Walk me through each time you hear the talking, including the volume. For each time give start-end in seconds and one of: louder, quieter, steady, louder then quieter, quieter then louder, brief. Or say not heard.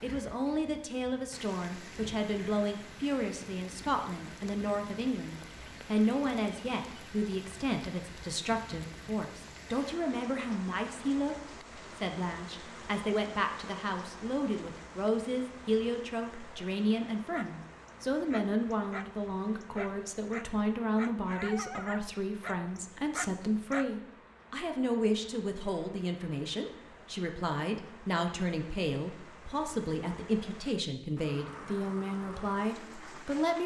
0.0-33.6 steady.